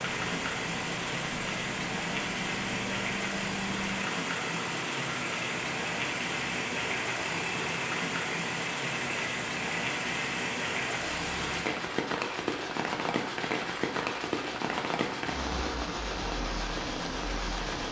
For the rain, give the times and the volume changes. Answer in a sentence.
The rain can be heard from 0.0 to 17.8 s, at a steady volume.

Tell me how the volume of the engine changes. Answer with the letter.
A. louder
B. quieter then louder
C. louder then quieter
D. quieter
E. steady
E.